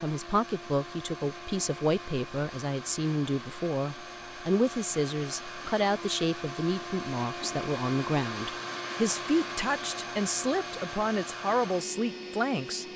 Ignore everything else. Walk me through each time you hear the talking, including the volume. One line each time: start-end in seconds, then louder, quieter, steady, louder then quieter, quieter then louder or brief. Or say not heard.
0.0-12.8 steady.